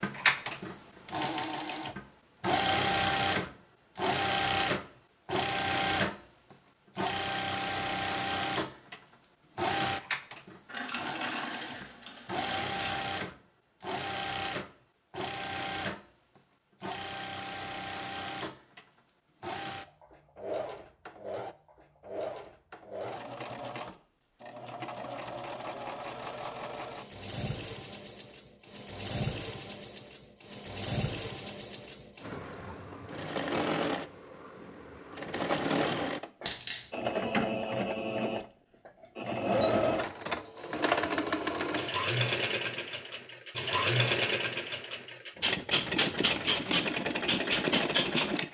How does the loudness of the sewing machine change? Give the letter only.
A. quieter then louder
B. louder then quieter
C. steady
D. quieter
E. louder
A.